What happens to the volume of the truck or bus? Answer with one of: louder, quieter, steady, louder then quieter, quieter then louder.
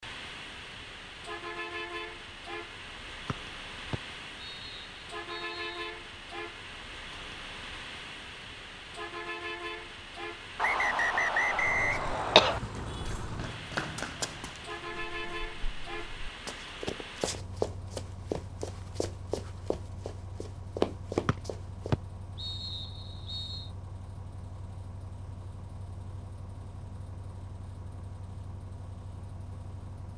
quieter.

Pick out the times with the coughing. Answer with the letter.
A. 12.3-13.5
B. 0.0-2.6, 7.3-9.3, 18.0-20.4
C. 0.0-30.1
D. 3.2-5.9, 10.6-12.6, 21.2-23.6
A.